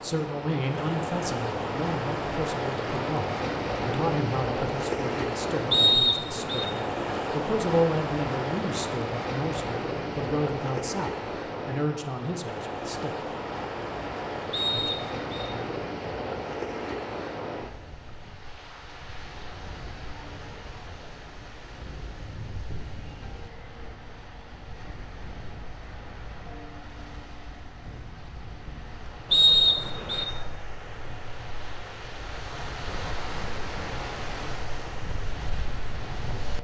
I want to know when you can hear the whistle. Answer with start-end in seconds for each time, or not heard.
5.7-6.7, 14.5-15.5, 29.3-30.2.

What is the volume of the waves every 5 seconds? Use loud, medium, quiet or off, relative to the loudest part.
loud, loud, loud, medium, quiet, quiet, medium, medium.